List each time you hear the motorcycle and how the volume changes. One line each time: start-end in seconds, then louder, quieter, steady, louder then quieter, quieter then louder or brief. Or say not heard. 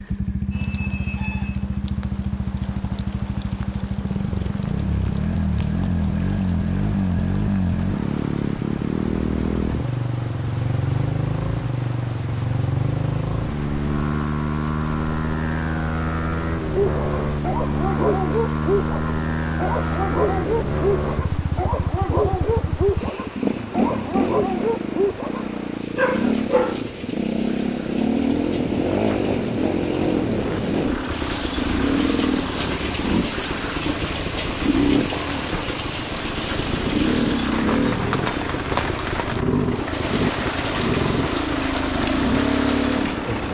0.0-43.4 steady.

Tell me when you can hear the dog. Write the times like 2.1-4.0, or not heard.
16.8-26.9.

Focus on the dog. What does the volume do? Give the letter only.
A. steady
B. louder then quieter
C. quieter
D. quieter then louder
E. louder
A.